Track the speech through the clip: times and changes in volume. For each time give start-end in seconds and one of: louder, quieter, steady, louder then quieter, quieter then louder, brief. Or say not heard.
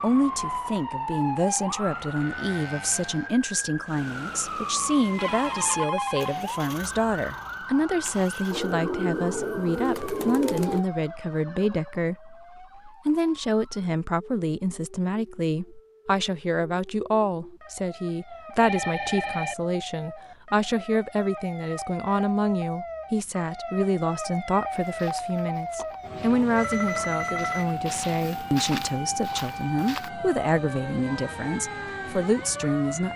0.0-33.1 steady.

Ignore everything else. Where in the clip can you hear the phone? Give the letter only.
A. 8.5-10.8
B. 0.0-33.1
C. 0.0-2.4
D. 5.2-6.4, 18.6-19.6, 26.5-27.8
D.